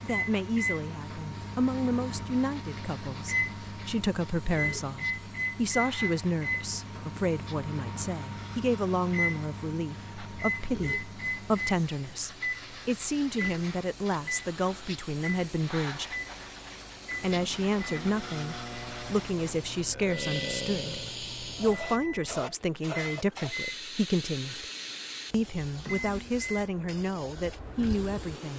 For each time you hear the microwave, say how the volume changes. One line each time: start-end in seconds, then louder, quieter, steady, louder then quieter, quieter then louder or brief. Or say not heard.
0.0-28.5 quieter.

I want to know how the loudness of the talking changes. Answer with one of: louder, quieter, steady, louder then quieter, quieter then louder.
steady.